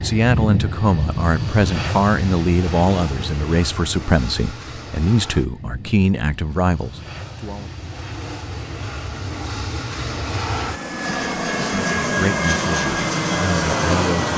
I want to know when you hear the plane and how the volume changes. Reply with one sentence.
You can hear the plane from 0.0 to 14.3 s, getting quieter then louder.